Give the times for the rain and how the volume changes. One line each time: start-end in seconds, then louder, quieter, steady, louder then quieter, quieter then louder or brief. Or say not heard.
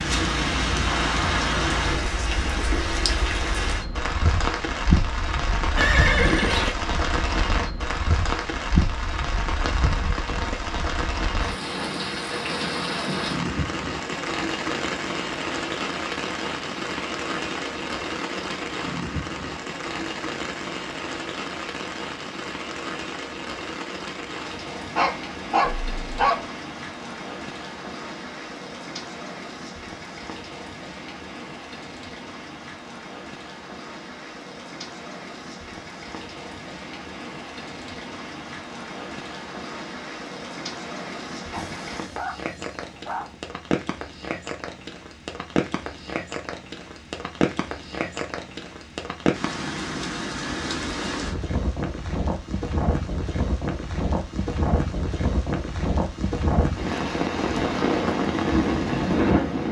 0.0-59.6 quieter then louder.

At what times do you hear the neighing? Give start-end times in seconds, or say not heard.
5.8-6.8.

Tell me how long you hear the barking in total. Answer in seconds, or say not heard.
3 s.